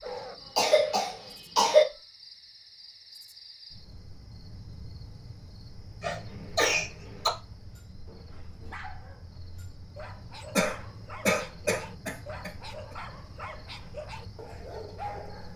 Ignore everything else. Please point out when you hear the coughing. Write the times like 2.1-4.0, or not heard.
0.1-1.9, 6.0-7.3, 10.6-12.5.